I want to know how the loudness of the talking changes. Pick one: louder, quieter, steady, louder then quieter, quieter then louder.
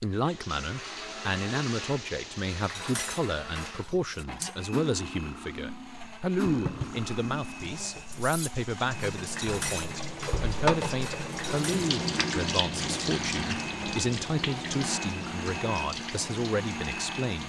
steady.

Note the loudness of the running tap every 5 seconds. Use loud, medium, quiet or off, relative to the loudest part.
medium, medium, loud, medium.